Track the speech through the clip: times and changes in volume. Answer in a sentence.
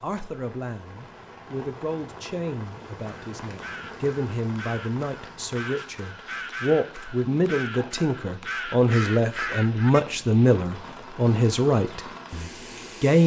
You can hear the speech from 0.0 to 13.2 s, getting louder.